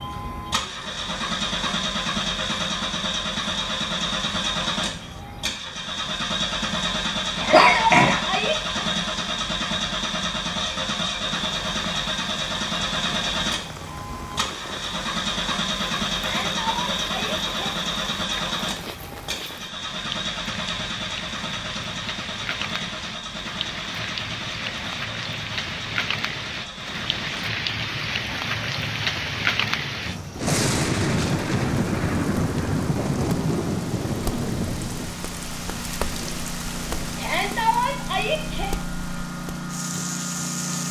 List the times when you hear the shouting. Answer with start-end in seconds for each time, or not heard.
7.3-8.8, 16.1-17.7, 37.1-38.8.